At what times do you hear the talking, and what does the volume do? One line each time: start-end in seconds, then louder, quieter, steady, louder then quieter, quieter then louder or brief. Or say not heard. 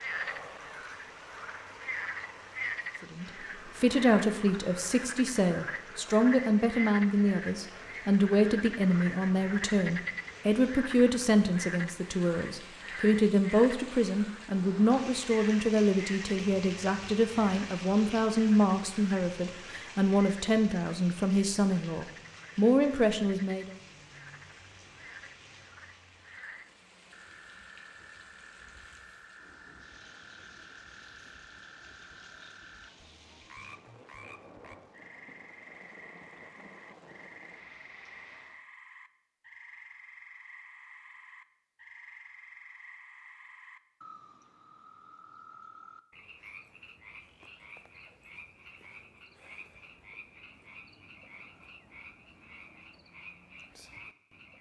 3.0-23.8 steady.